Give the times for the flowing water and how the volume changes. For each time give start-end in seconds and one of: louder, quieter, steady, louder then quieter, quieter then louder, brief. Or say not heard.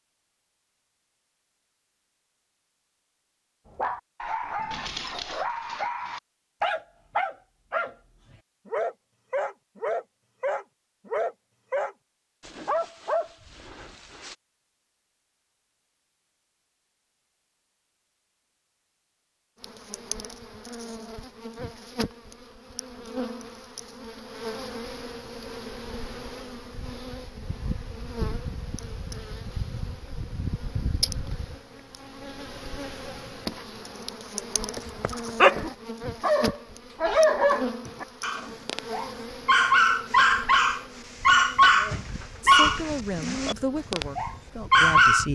not heard.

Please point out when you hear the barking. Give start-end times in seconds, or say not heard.
3.7-14.3, 34.6-45.2.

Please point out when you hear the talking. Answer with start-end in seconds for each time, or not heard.
42.4-45.2.